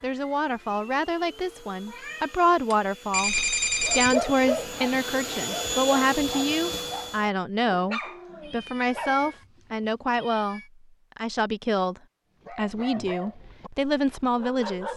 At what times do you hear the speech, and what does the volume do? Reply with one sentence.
The speech can be heard from 0.0 to 14.9 s, at a steady volume.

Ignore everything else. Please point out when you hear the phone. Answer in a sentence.
You can hear the phone from 3.1 to 4.2 s.